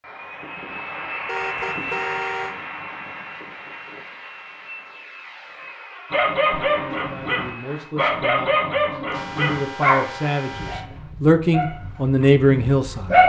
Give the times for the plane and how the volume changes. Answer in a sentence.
You can hear the plane from 0.0 to 7.9 s, getting quieter.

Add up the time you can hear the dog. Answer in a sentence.
The dog can be heard for 7 seconds in total.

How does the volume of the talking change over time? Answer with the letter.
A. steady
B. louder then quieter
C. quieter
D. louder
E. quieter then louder
D.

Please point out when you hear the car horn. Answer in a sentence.
You can hear the car horn from 1.2 to 2.5 s, from 6.5 to 7.1 s and from 9.1 to 10.8 s.